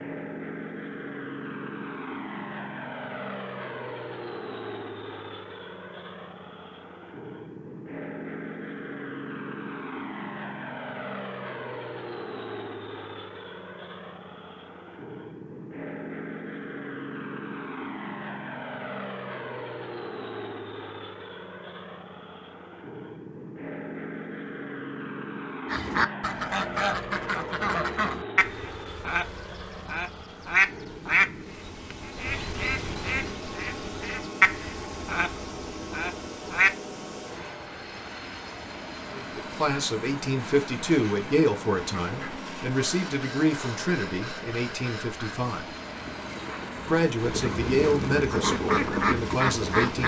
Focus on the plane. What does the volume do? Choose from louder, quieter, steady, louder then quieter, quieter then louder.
steady.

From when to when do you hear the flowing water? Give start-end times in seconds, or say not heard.
not heard.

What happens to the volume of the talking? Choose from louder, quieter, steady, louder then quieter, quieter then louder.
steady.